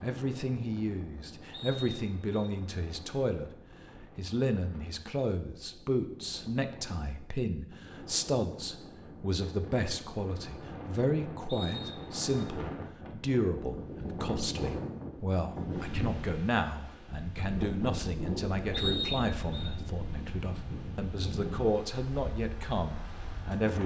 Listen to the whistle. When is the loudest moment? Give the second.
19 s.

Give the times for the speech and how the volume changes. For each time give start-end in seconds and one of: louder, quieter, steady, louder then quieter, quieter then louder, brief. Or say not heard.
0.0-23.8 steady.